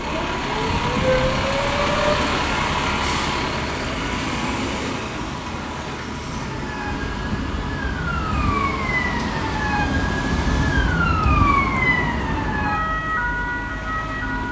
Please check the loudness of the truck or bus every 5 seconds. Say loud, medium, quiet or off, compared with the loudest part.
loud, medium, medium.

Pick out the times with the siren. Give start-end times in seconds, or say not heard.
0.0-2.1, 6.3-14.4.